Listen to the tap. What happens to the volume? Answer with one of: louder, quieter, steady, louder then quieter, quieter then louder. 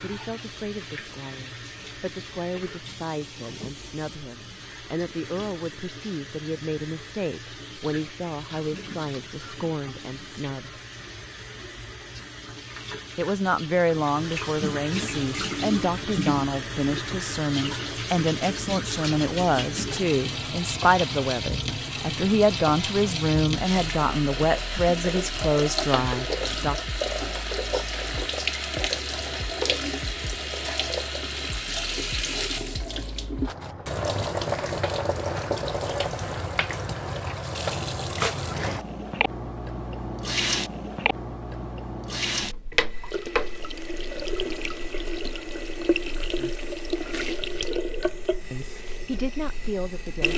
louder.